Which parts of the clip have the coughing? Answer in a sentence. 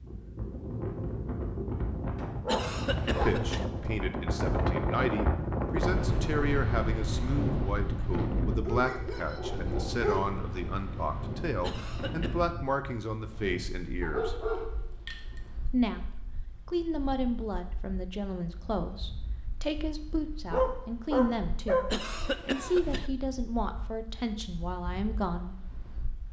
You can hear the coughing from 2.5 to 3.6 s, from 11.6 to 12.4 s and from 21.9 to 23.1 s.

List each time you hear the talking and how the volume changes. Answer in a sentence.
You can hear the talking from 3.0 to 14.3 s, at a steady volume; and from 15.7 to 25.6 s, at a steady volume.